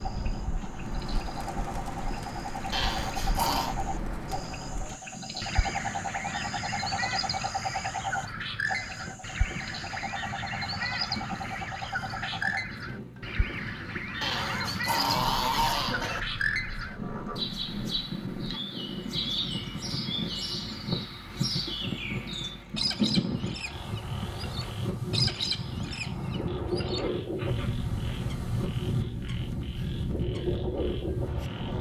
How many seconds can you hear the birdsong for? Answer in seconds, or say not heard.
32 s.